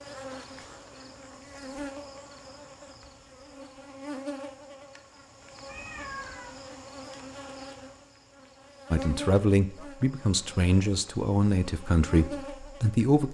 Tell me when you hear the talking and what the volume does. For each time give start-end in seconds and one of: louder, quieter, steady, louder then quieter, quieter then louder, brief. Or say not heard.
8.9-13.3 quieter.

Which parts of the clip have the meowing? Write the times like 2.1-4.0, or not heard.
5.7-6.5.